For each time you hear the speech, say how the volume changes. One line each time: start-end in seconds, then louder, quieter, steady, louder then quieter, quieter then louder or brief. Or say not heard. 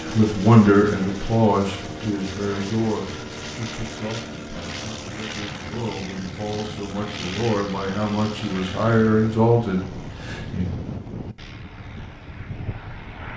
0.1-10.7 quieter then louder.